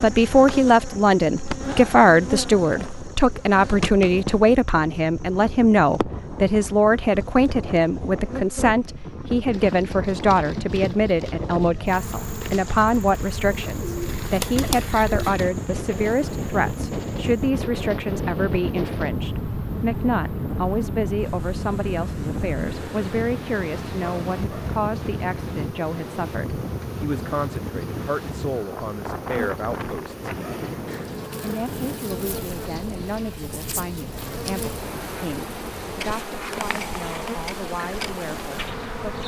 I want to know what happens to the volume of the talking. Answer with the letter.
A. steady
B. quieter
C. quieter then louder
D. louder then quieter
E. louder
B.